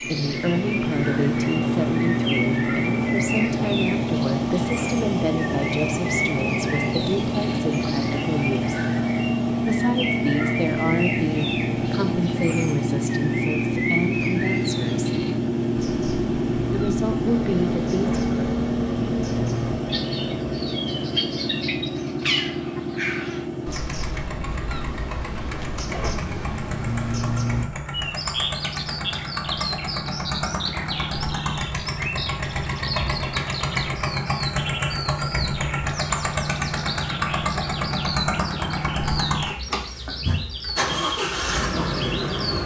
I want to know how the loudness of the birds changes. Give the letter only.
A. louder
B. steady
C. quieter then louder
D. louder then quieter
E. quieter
B.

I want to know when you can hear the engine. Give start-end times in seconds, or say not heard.
0.0-42.6.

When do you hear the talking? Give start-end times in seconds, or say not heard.
0.0-8.8, 9.6-15.2, 16.7-18.6.